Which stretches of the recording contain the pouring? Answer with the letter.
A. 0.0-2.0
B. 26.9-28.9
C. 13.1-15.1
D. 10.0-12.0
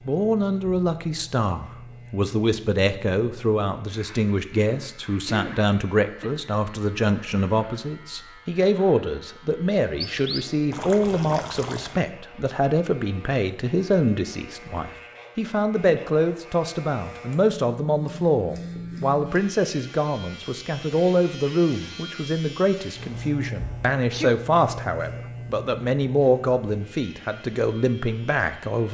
D.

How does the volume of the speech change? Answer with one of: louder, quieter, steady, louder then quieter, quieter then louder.
steady.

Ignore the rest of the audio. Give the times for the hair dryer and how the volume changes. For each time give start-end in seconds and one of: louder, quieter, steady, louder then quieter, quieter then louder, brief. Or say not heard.
not heard.